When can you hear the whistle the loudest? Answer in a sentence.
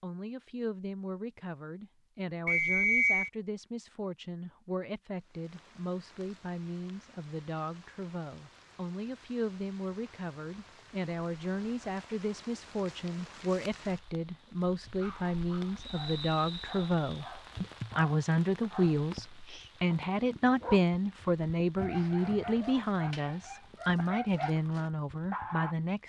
The volume of the whistle peaks at 3 seconds.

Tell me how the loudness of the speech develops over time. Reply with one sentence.
The volume of the speech goes up.